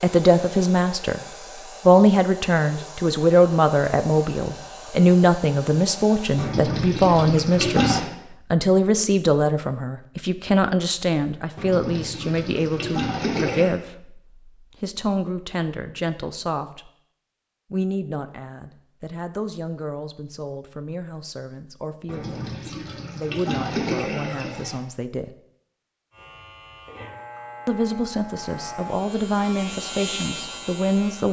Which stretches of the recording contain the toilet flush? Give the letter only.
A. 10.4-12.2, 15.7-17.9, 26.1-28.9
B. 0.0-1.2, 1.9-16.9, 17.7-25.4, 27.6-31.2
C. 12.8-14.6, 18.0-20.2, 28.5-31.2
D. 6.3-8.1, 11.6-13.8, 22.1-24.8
D.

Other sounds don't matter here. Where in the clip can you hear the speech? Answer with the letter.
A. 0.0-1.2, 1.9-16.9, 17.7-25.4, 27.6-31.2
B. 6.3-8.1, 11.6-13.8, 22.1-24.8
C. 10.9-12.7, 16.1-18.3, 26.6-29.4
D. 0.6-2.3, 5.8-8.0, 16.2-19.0
A.